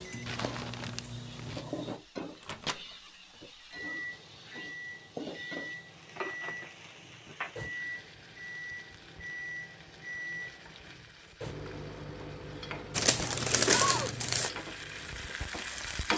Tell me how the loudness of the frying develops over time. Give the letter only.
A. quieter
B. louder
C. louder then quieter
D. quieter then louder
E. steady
D.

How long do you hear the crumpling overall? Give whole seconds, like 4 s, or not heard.
3 s.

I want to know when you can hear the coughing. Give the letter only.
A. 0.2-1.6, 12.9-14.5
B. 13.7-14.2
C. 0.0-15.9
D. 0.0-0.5
B.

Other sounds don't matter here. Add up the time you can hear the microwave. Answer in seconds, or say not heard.
16 s.